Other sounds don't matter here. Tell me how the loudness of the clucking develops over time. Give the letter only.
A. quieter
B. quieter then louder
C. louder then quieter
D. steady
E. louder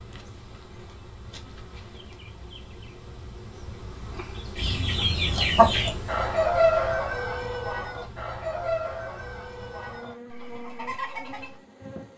A.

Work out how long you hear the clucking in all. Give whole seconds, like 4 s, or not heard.
7 s.